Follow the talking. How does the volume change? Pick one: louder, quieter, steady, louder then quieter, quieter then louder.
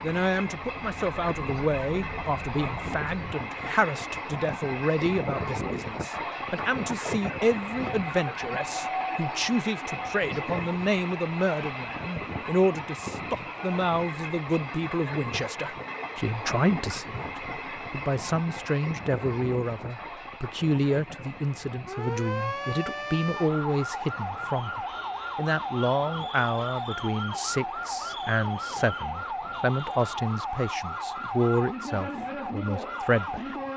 steady.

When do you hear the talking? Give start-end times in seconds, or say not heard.
0.0-33.5.